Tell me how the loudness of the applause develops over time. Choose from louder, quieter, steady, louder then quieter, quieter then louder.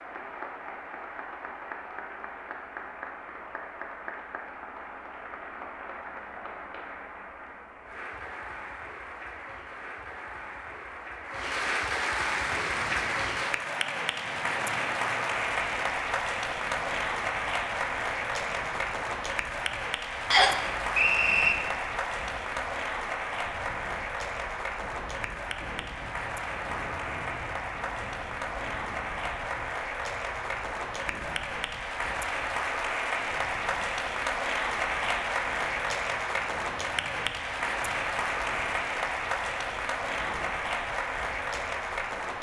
louder.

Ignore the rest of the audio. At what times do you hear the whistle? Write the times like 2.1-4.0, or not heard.
20.3-21.6.